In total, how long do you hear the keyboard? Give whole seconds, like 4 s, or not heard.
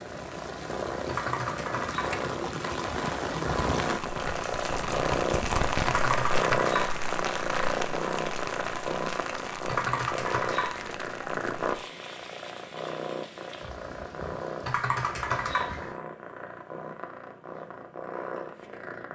5 s.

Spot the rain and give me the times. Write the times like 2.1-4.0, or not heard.
0.0-15.9.